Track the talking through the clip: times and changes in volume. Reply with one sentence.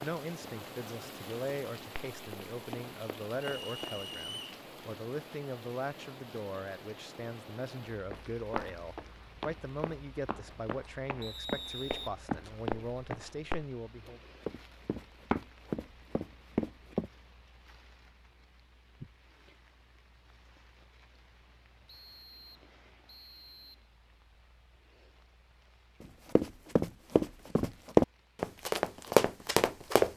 The talking can be heard from 0.0 to 14.2 s, at a steady volume.